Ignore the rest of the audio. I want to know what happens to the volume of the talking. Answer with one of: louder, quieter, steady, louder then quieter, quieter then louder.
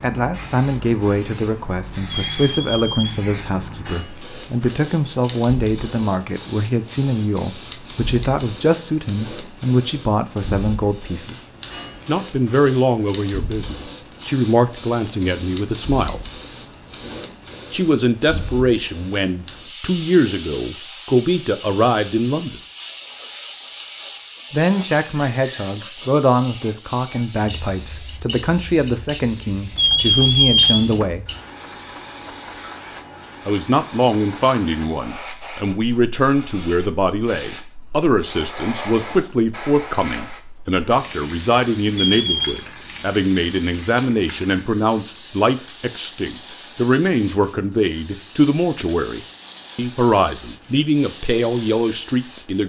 steady.